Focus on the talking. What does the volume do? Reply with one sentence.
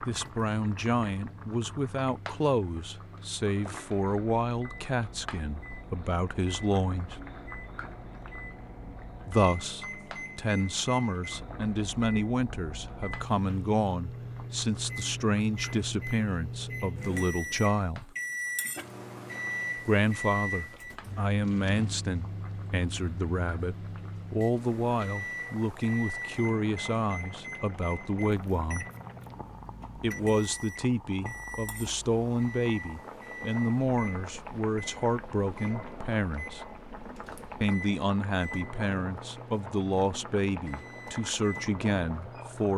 The volume of the talking stays about the same.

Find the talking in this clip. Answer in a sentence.
You can hear the talking from 0.0 to 7.2 s, from 9.2 to 18.1 s, from 19.9 to 28.9 s, from 29.9 to 36.6 s and from 37.6 to 42.7 s.